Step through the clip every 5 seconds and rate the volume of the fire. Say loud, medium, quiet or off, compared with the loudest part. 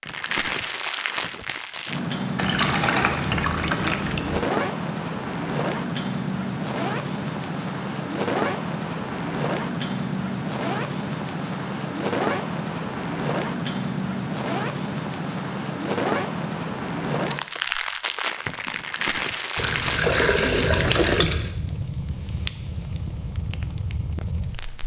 loud, loud, loud, loud, medium.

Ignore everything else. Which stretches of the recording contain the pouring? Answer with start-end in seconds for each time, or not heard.
2.4-4.4, 19.6-21.5.